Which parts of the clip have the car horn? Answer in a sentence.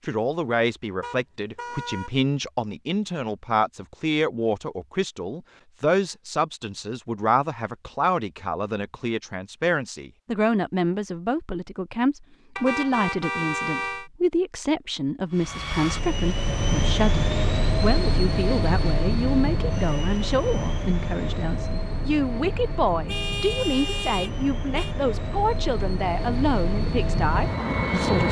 You can hear the car horn from 1.0 to 2.1 s, from 12.6 to 14.1 s and from 23.1 to 24.9 s.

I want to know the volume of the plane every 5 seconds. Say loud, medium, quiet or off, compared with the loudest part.
off, off, off, loud, medium, loud.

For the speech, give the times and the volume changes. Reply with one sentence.
You can hear the speech from 0.1 to 28.2 s, at a steady volume.